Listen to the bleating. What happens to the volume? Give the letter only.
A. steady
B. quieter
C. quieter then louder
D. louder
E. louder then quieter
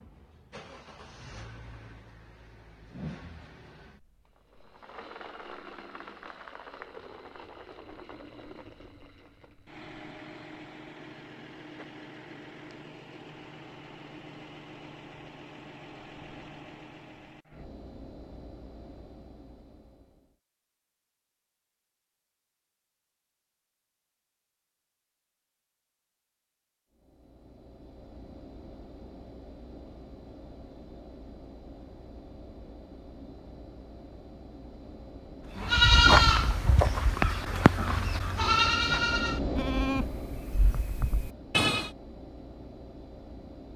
B.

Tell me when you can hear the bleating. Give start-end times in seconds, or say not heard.
35.5-41.9.